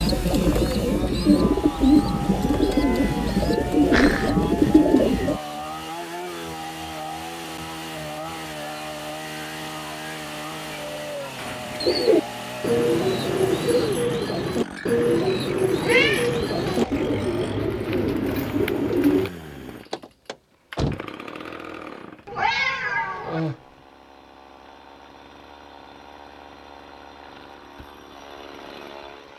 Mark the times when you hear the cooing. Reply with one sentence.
You can hear the cooing from 0.0 to 5.4 s and from 11.3 to 19.3 s.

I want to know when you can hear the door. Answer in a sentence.
The door can be heard from 19.9 to 21.1 s.